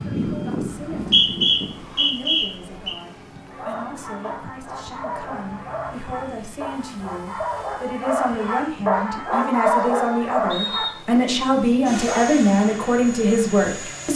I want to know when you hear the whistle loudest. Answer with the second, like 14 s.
1 s.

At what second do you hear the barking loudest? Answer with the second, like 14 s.
10 s.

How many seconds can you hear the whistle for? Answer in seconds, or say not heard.
3 s.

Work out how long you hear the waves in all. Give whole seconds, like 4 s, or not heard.
not heard.